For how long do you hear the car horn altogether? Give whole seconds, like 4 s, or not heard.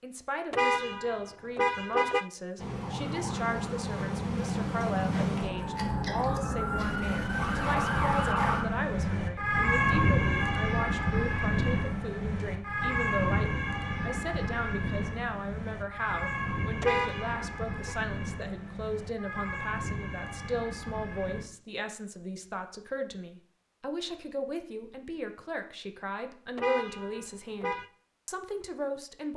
4 s.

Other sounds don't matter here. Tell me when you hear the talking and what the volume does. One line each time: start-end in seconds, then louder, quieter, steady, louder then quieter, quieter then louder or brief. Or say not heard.
0.0-29.3 steady.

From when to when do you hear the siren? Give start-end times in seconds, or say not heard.
2.5-21.4.